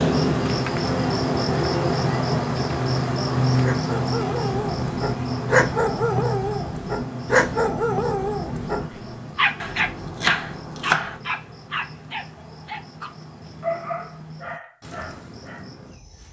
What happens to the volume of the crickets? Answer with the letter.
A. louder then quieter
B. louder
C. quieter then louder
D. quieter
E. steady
D.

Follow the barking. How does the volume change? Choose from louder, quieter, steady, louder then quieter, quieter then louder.
quieter.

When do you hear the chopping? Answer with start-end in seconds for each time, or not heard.
9.6-11.2.